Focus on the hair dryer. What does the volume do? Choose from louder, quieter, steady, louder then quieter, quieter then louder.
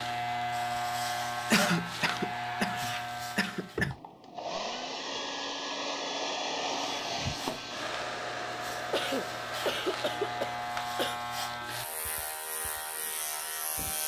louder then quieter.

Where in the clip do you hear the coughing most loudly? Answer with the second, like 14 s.
2 s.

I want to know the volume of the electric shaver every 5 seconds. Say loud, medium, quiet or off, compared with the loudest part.
loud, medium, loud.